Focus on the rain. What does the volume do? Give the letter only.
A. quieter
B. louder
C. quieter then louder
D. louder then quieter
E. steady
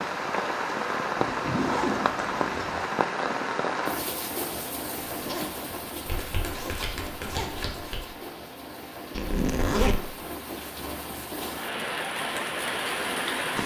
C.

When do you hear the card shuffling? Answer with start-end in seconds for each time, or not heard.
6.0-8.1.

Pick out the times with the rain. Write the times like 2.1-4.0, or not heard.
0.0-13.6.